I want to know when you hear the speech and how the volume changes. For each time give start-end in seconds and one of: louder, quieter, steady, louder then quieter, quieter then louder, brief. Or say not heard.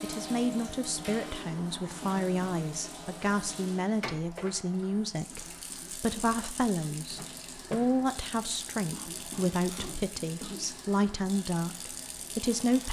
0.0-12.8 steady.